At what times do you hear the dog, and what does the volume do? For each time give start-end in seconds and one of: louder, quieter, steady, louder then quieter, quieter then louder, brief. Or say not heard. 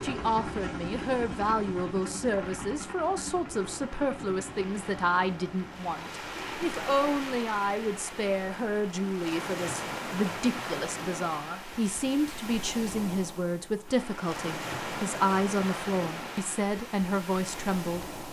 not heard.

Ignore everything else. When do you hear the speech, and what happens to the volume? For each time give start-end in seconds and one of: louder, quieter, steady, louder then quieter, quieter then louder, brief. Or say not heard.
0.0-18.1 steady.